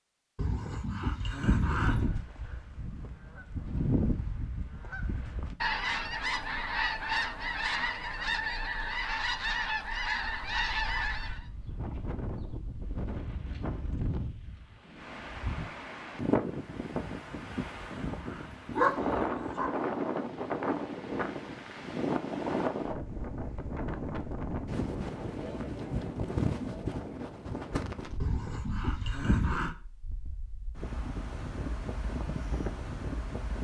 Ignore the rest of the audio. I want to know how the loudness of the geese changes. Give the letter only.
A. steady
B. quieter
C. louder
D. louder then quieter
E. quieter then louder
C.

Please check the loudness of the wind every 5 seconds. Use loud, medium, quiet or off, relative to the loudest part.
off, off, medium, loud, loud, loud, medium.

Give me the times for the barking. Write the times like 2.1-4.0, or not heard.
0.3-2.1, 17.1-19.7, 28.2-29.8.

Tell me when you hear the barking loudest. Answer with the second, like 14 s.
19 s.